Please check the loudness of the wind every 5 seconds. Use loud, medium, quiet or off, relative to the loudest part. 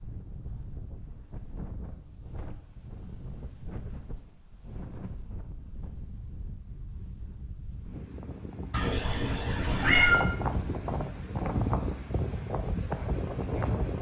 quiet, quiet, loud.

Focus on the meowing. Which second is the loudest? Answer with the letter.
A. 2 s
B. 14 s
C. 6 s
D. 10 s
D.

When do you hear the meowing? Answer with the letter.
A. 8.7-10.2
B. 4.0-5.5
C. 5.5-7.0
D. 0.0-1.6
A.